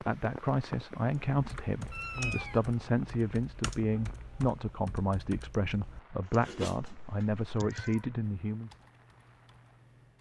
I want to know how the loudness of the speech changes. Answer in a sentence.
The loudness of the speech stays about the same.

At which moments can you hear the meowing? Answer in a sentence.
You can hear the meowing from 1.9 to 2.6 s and from 6.3 to 8.1 s.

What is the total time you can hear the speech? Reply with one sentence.
The speech can be heard for 9 seconds in total.